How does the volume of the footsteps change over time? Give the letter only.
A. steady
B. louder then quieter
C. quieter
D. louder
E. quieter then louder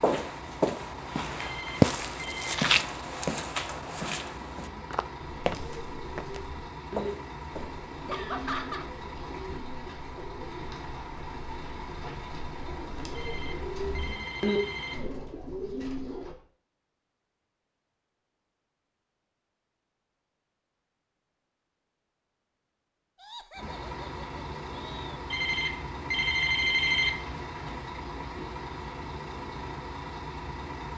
B.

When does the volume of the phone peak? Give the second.
27 s.